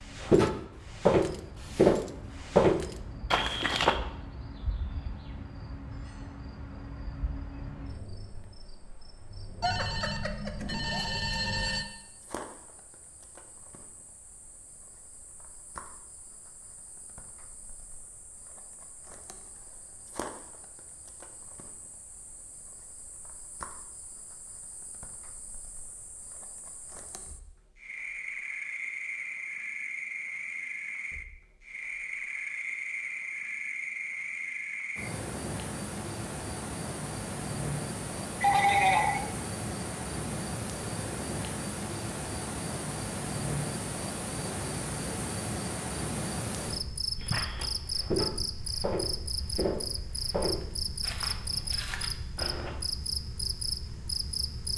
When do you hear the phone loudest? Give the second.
39 s.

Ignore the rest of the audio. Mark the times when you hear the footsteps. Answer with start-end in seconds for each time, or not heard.
0.1-4.0, 47.2-52.8.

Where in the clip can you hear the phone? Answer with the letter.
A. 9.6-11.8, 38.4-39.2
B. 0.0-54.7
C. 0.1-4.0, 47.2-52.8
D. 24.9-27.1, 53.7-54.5
A.